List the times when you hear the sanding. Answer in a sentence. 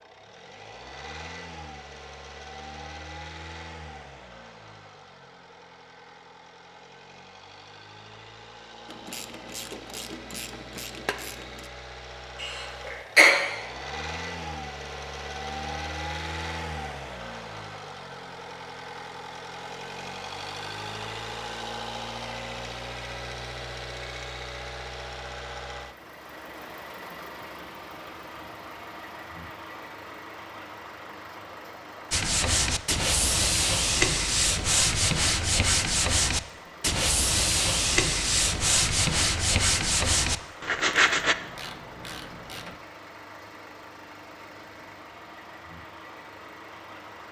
You can hear the sanding from 32.1 to 41.4 s.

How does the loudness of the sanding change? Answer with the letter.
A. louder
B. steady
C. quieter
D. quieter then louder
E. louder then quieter
B.